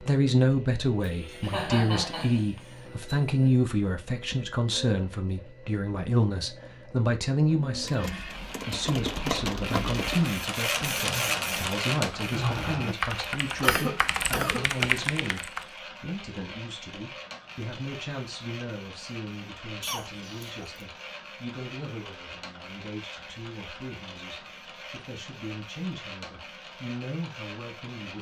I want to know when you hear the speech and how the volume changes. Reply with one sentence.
You can hear the speech from 0.0 to 28.1 s, getting quieter.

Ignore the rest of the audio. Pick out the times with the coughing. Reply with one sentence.
The coughing can be heard from 1.0 to 3.6 s, from 13.6 to 14.8 s and from 19.8 to 20.6 s.